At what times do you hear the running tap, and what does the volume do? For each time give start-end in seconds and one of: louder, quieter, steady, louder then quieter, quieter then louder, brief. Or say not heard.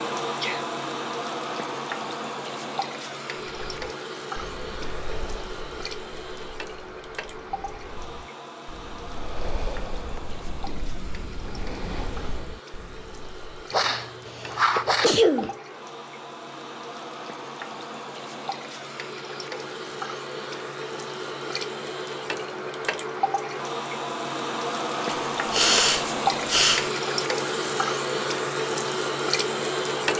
0.0-30.1 quieter then louder.